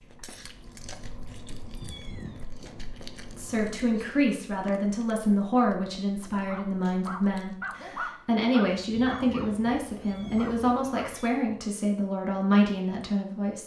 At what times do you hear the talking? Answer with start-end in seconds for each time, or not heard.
3.4-13.6.